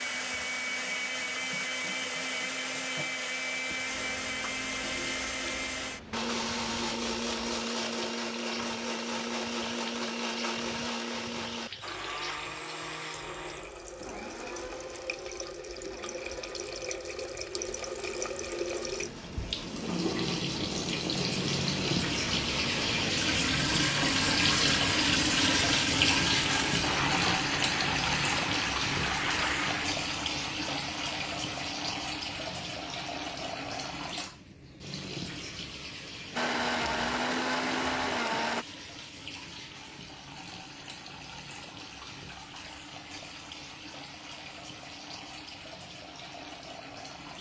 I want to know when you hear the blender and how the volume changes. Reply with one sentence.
You can hear the blender from 0.0 to 29.9 s, getting quieter then louder; and briefly from 36.4 to 38.6 s.